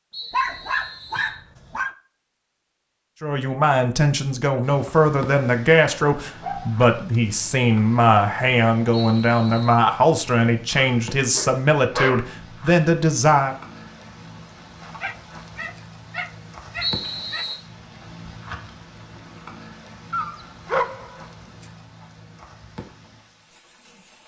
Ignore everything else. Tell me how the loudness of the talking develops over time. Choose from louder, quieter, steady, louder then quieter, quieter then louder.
steady.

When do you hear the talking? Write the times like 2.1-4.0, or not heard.
3.2-13.6.